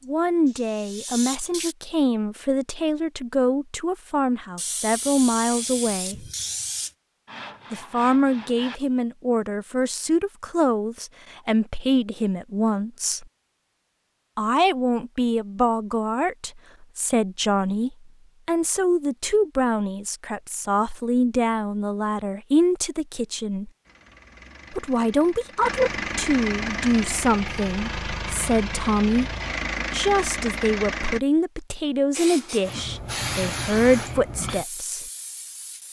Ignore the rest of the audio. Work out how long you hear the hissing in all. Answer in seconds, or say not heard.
8 s.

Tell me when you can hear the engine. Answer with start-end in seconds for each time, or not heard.
23.9-31.2.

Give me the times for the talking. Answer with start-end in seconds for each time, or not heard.
0.1-6.2, 7.7-13.2, 14.3-23.7, 24.7-29.3, 29.9-35.0.